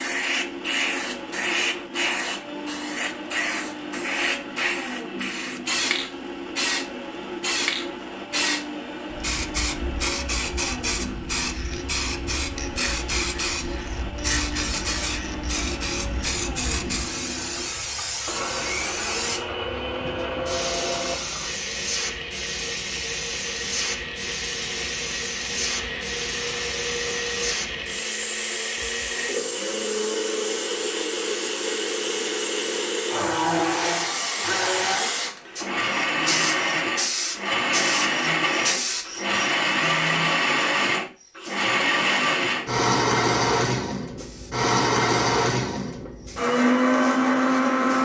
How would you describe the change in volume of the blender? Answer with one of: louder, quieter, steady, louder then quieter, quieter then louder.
louder.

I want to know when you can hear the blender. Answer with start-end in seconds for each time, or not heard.
0.0-48.0.